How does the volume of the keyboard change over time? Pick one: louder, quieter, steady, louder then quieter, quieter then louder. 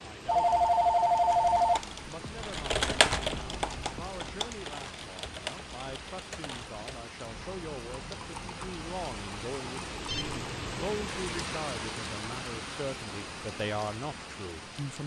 quieter.